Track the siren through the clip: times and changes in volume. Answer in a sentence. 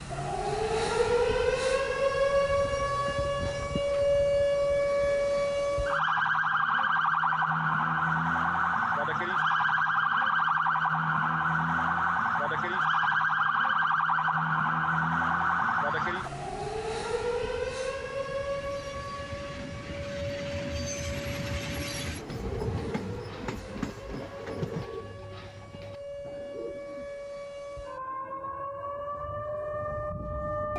You can hear the siren from 0.0 to 30.7 s, getting quieter.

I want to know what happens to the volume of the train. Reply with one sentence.
The loudness of the train goes up.